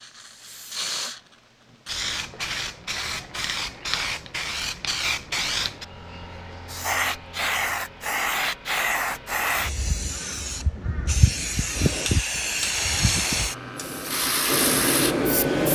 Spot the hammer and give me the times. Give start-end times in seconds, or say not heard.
11.7-15.6.